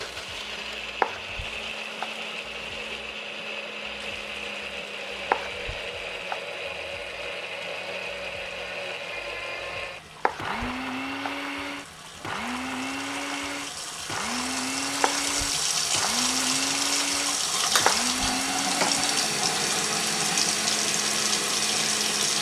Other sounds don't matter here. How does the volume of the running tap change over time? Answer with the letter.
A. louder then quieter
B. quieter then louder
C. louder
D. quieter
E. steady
C.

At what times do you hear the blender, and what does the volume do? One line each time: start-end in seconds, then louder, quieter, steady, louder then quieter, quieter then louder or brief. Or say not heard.
0.0-22.3 steady.